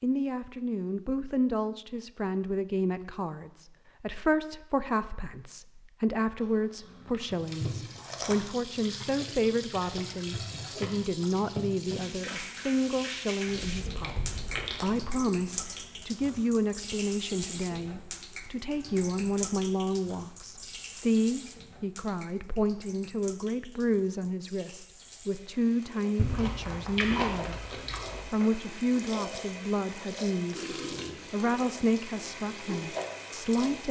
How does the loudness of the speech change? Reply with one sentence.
The volume of the speech stays about the same.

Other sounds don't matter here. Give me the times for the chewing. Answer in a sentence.
You can hear the chewing from 6.4 to 8.3 s, from 13.4 to 15.1 s and from 26.1 to 28.2 s.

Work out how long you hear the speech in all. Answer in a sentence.
You can hear the speech for 34 seconds altogether.